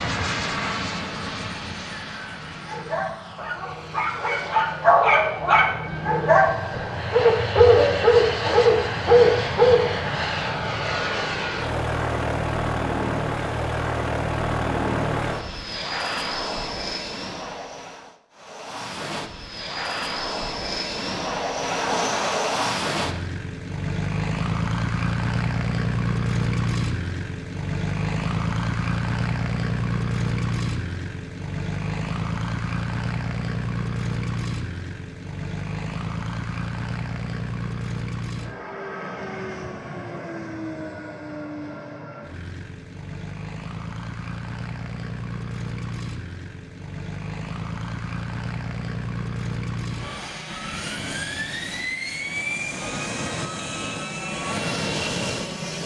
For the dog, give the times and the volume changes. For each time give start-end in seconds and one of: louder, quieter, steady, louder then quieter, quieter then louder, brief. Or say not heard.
2.2-9.8 louder.